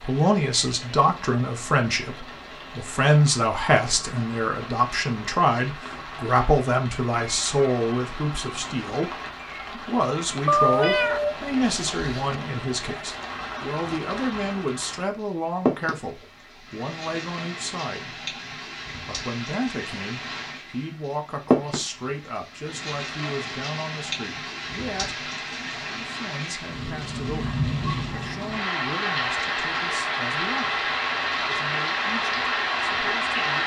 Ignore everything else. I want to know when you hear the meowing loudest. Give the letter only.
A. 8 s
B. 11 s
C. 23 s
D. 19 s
B.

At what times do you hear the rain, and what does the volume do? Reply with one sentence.
The rain can be heard from 0.0 to 33.6 s, getting louder.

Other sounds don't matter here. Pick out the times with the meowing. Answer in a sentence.
You can hear the meowing from 10.4 to 12.4 s.